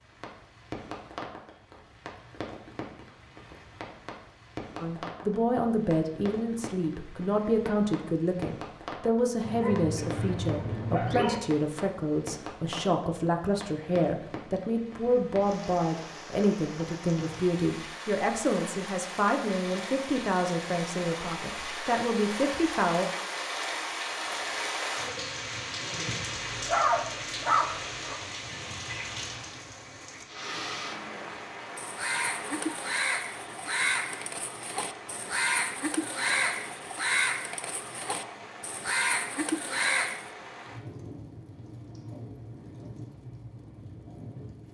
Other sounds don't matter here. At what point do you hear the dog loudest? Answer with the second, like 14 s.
27 s.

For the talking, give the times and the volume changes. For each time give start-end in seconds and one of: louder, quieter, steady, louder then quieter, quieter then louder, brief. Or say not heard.
4.8-23.1 steady.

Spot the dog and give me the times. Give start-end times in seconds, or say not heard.
9.4-11.4, 26.3-28.1.